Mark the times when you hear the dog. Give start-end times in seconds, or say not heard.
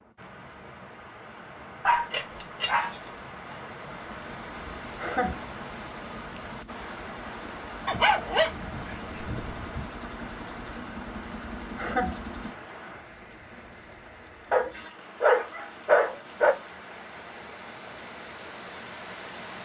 1.9-3.5, 7.8-9.8, 14.5-16.6.